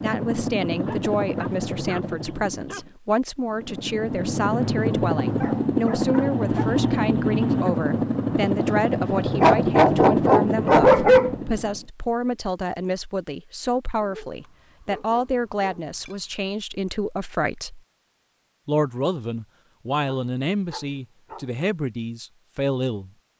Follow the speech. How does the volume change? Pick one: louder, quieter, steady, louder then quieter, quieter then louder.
steady.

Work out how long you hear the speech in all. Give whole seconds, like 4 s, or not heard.
22 s.